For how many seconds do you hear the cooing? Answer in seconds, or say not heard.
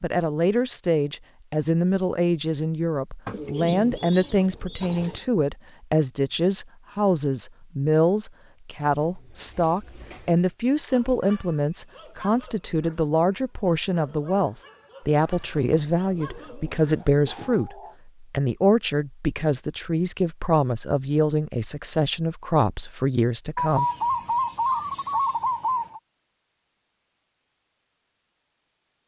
9 s.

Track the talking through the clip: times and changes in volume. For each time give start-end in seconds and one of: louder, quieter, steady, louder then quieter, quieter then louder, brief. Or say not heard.
0.0-23.9 steady.